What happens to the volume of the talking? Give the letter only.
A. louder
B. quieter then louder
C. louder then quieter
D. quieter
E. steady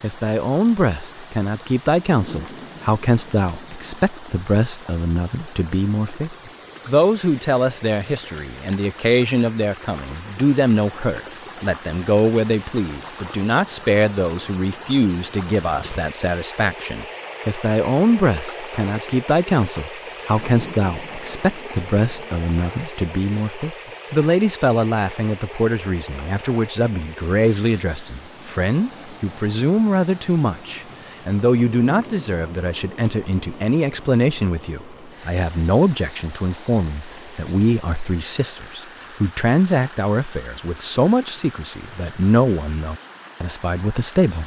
E.